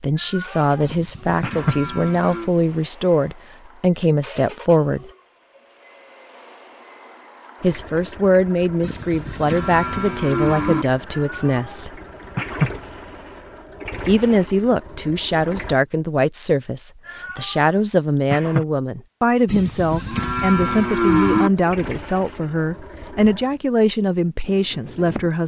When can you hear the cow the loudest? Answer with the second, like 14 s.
21 s.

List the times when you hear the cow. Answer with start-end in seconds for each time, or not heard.
0.8-2.5, 8.8-10.8, 19.4-21.5.